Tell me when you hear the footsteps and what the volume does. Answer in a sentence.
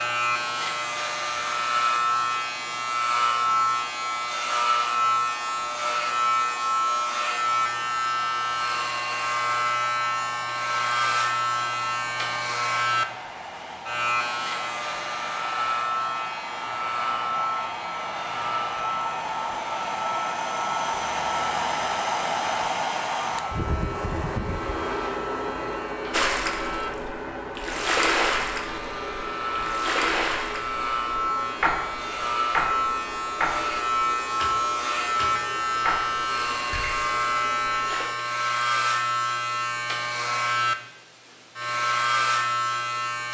The footsteps can't be heard in this clip.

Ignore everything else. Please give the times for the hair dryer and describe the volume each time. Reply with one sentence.
You can hear the hair dryer from 0.2 to 38.0 s, getting louder then quieter.